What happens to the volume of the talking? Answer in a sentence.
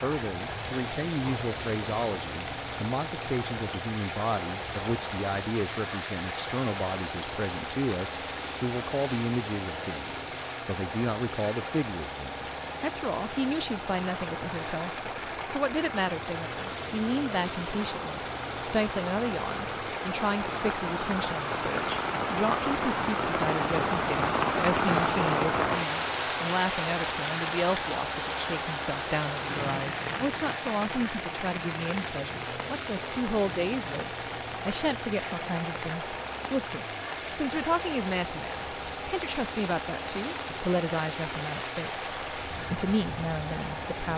The volume of the talking stays about the same.